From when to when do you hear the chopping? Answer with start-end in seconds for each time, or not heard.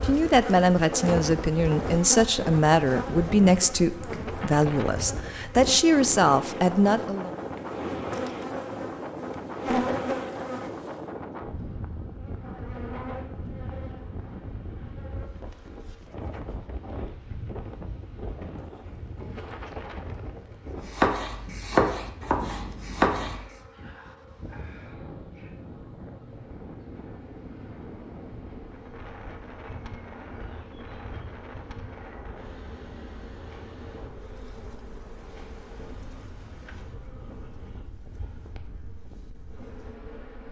20.9-23.4.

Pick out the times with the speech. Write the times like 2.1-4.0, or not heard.
0.0-7.3.